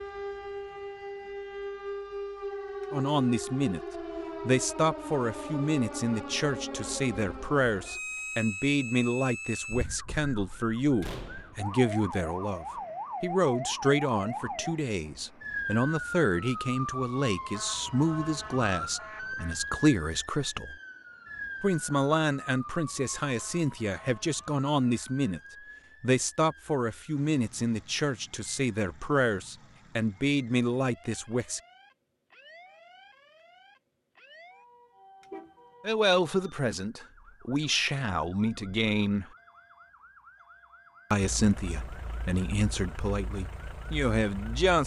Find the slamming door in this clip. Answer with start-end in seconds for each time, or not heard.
11.0-11.6.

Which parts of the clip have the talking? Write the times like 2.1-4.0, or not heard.
2.9-3.8, 4.5-20.8, 21.6-25.4, 26.0-31.6, 35.9-39.2, 41.1-44.8.